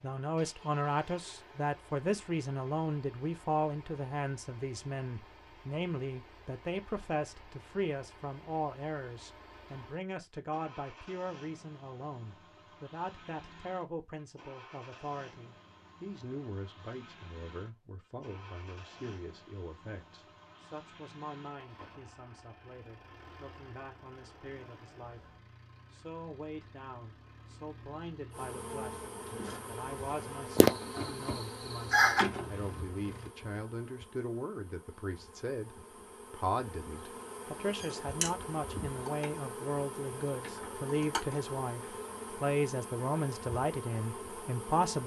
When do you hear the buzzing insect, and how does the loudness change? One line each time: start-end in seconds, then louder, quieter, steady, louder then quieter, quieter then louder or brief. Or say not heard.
28.3-45.0 steady.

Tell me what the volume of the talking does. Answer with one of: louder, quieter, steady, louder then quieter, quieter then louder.
quieter then louder.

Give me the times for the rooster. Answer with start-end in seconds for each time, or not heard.
30.6-32.2.